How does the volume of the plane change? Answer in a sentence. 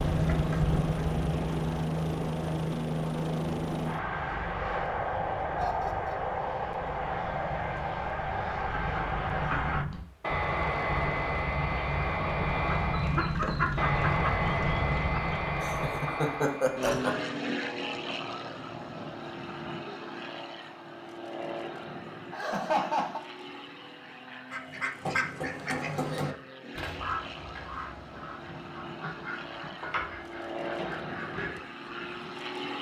The loudness of the plane goes down.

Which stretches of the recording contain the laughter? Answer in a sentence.
You can hear the laughter from 5.6 to 6.2 s, from 15.6 to 17.3 s and from 22.3 to 23.2 s.